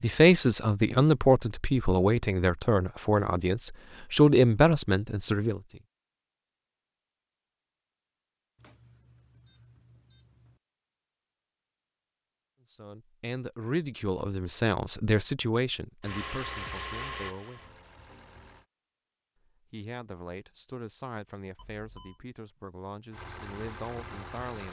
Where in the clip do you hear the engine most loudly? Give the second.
17 s.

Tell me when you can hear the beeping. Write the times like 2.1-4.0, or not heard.
8.6-10.6, 21.6-22.2.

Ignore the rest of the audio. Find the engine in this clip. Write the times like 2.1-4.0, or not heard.
16.0-18.6, 23.1-24.6.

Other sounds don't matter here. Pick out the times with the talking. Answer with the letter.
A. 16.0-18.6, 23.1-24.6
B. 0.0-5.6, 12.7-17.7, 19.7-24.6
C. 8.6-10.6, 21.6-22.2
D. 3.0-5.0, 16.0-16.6
B.